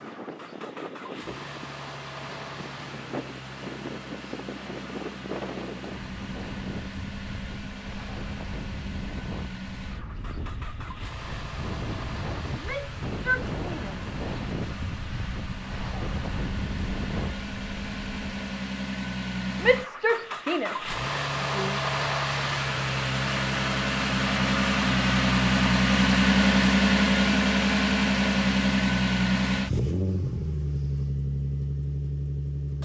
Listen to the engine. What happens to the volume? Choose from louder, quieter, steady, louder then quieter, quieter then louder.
louder.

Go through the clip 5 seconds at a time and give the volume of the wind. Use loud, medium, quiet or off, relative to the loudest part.
loud, loud, loud, loud, off, off, off.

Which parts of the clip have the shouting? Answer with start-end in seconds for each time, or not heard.
12.5-14.1, 19.6-21.8.